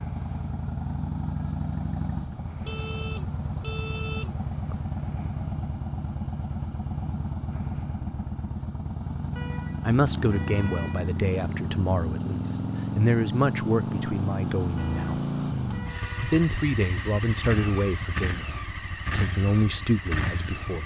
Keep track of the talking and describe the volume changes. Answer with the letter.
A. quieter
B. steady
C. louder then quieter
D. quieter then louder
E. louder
B.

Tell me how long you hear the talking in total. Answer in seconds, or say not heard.
10 s.